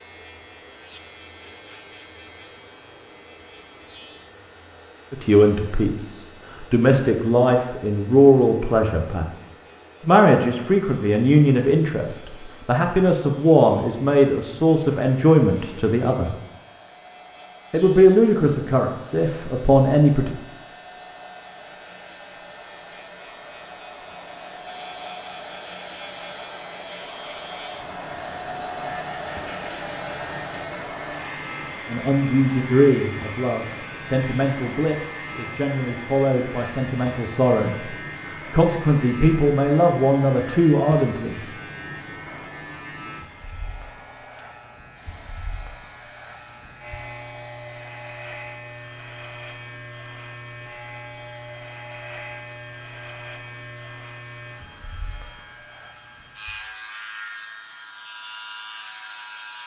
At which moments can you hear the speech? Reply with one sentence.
You can hear the speech from 5.1 to 9.3 s, from 10.1 to 16.4 s, from 17.7 to 20.4 s and from 31.9 to 41.4 s.